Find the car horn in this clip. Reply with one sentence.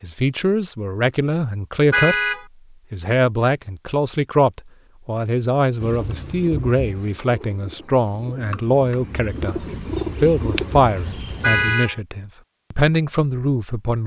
The car horn can be heard from 1.9 to 2.5 s and from 11.4 to 11.9 s.